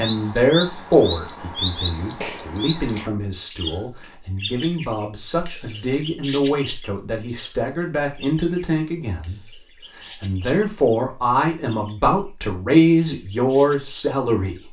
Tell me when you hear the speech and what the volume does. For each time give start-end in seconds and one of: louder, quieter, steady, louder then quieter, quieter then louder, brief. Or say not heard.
0.0-14.6 quieter then louder.